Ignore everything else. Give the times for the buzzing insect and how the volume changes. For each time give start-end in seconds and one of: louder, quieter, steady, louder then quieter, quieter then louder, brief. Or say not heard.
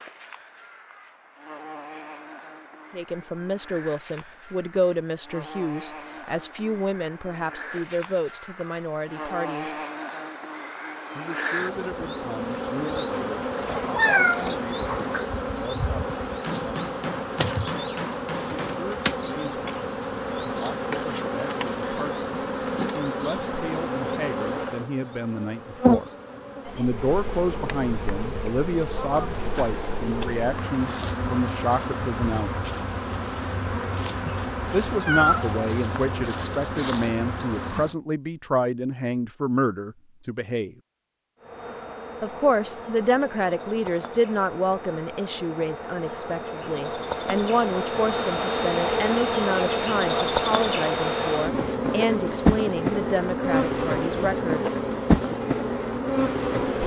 0.0-38.0 louder
41.4-56.8 louder.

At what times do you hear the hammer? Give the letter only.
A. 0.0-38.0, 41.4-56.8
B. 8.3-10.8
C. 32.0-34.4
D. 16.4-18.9
D.